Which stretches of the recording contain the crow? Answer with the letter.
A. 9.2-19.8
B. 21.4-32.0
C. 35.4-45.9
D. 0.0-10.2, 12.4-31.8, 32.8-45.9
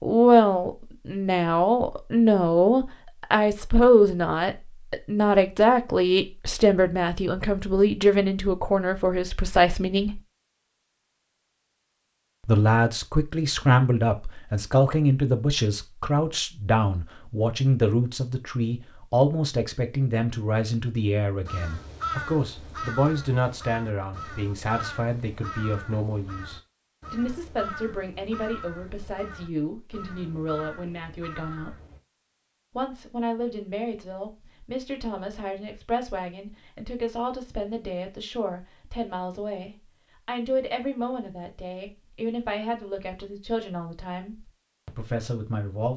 B.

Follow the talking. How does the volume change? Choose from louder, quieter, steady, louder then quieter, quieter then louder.
quieter.